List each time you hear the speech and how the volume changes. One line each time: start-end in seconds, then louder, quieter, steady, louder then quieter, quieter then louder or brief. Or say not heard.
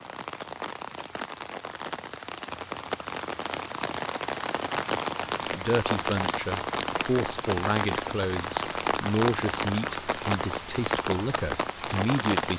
5.5-12.5 steady.